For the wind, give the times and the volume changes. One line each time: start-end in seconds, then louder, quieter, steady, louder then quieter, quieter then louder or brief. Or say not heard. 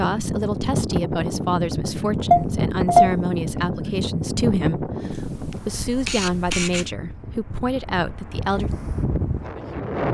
0.0-10.1 quieter then louder.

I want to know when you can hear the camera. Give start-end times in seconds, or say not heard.
2.3-3.1, 5.1-6.8.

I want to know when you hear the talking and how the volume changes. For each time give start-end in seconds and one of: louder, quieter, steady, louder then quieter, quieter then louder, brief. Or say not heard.
0.0-8.7 steady.